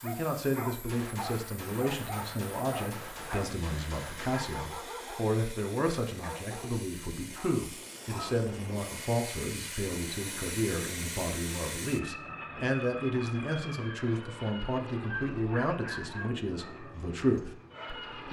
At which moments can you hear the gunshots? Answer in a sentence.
You can hear the gunshots from 0.8 to 4.5 s.